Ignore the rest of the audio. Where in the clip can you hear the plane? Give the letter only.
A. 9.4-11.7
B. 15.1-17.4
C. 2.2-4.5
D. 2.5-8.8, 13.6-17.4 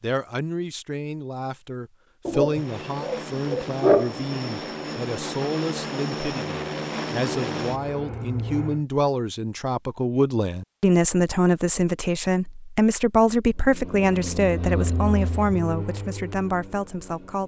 D.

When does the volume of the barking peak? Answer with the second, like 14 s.
4 s.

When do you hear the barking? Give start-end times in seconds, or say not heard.
2.2-4.5.